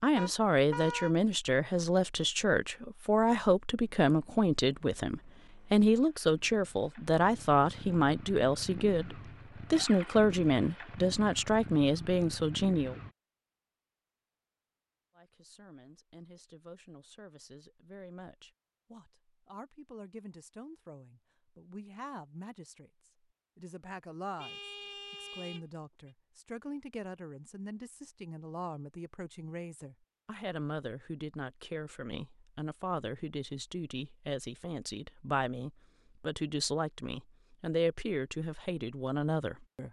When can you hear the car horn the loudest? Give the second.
1 s.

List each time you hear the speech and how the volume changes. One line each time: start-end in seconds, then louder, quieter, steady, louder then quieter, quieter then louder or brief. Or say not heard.
0.0-12.9 steady
15.2-39.8 louder.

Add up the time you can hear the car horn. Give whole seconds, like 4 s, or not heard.
3 s.